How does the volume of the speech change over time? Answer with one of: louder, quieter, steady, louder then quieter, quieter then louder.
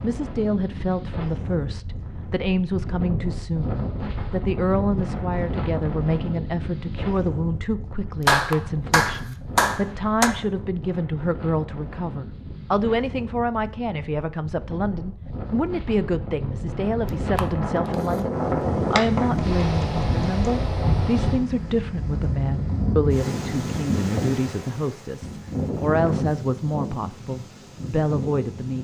steady.